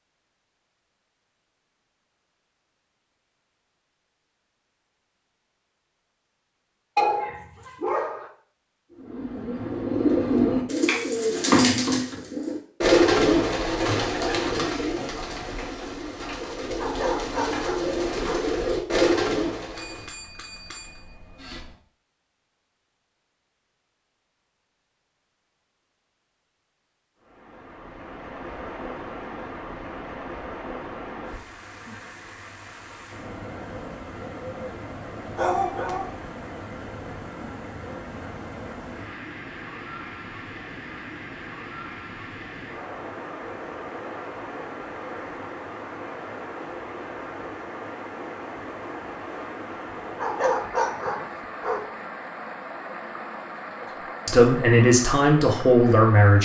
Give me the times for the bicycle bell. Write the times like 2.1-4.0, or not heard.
19.8-21.8.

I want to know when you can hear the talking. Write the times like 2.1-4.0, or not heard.
54.2-56.3.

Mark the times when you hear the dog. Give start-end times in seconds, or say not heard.
7.0-8.3, 16.8-18.4, 35.4-36.1, 50.2-51.8.